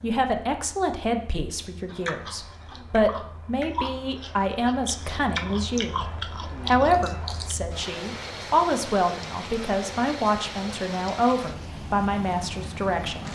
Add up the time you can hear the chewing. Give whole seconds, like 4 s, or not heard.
6 s.